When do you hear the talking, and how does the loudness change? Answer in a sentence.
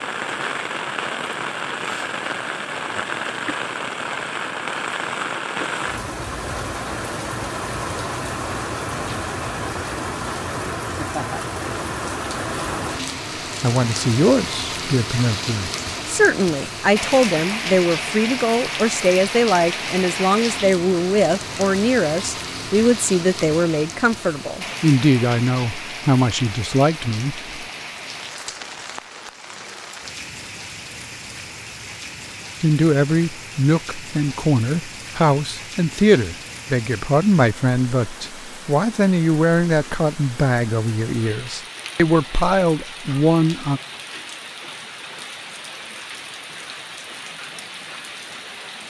You can hear the talking from 13.6 to 27.6 s, at a steady volume; and from 32.6 to 43.8 s, at a steady volume.